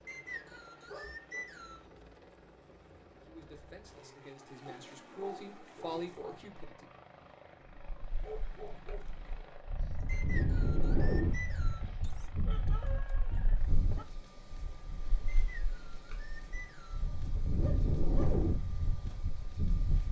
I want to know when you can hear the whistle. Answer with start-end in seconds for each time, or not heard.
0.1-1.9, 10.1-11.9, 15.2-17.1.